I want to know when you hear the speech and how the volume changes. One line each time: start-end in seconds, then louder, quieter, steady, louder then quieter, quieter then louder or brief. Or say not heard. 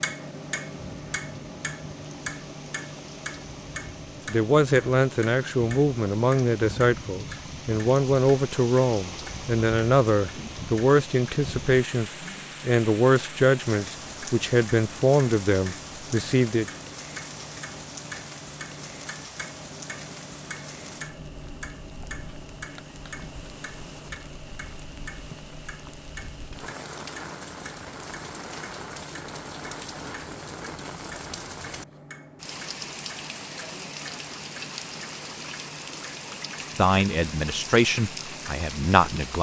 4.2-16.6 steady
36.6-39.3 brief.